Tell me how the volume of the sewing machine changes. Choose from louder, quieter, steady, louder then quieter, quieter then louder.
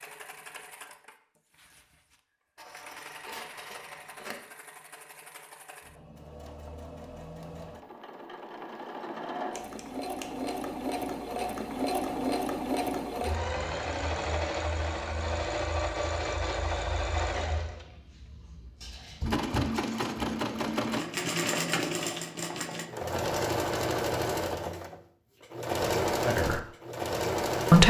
louder.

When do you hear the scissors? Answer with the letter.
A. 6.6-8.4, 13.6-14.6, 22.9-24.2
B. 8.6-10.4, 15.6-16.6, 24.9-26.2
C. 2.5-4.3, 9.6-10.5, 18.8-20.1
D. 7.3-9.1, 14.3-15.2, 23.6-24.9
C.